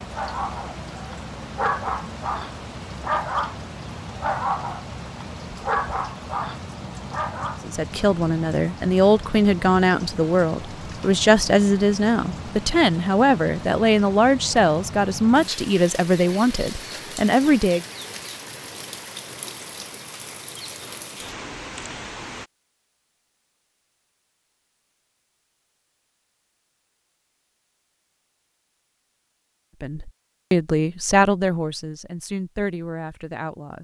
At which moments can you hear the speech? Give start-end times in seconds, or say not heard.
7.7-17.9, 29.8-33.7.